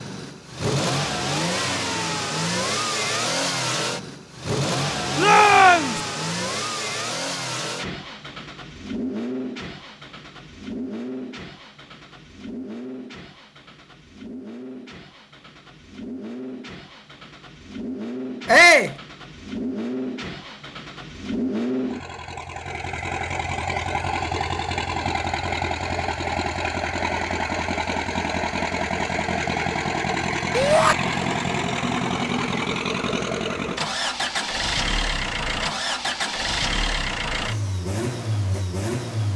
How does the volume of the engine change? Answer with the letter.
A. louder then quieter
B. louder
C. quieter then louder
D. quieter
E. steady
C.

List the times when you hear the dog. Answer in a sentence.
You can't hear the dog here.